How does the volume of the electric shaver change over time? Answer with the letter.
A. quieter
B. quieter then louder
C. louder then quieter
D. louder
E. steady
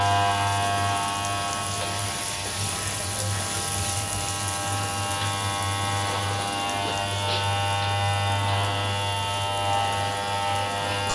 B.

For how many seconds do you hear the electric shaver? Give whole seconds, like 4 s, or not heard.
11 s.